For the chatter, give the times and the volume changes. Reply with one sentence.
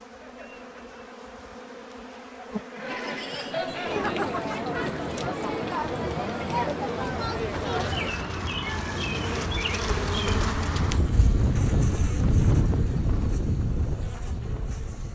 The chatter can be heard from 0.1 to 8.1 s, getting louder.